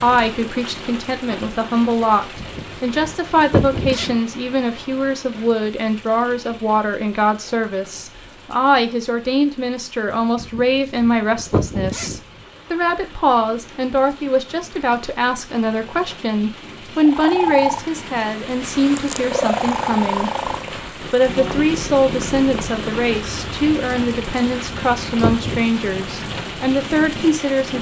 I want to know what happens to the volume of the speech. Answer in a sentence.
The loudness of the speech stays about the same.